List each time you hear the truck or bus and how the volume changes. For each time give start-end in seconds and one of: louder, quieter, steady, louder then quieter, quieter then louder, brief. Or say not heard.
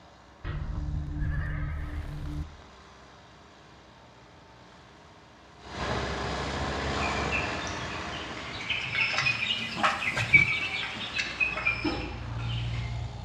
0.0-13.1 louder then quieter.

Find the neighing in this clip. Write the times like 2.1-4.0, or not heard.
0.4-2.5.